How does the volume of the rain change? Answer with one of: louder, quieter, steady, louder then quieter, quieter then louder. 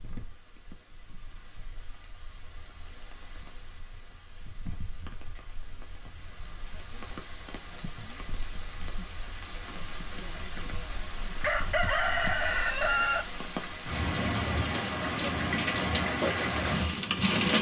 louder.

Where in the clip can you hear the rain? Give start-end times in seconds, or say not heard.
0.0-17.5.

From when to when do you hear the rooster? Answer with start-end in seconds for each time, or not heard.
11.4-13.2.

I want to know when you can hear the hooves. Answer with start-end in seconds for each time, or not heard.
not heard.